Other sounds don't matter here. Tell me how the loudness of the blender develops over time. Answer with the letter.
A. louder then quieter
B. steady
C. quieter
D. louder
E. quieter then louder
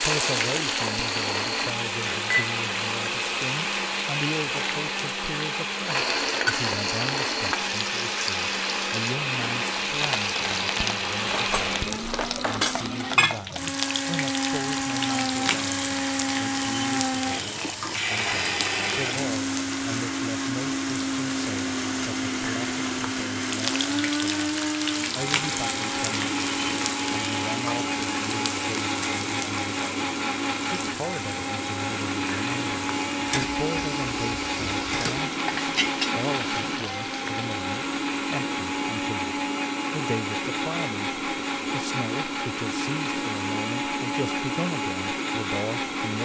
B.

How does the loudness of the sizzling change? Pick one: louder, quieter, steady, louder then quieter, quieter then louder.
steady.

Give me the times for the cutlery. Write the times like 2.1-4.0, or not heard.
11.2-12.9.